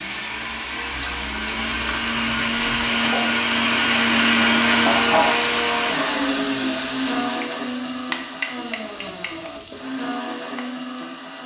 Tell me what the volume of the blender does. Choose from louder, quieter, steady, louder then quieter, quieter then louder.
louder then quieter.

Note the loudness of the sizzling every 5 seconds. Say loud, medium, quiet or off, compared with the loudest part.
loud, loud, medium.